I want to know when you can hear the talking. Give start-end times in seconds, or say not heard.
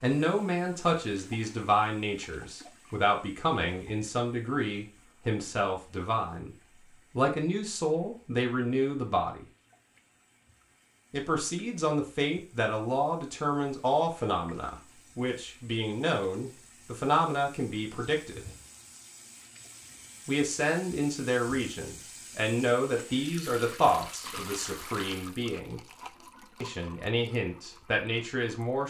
0.0-6.5, 7.2-9.4, 11.1-18.4, 20.2-25.8, 26.6-28.8.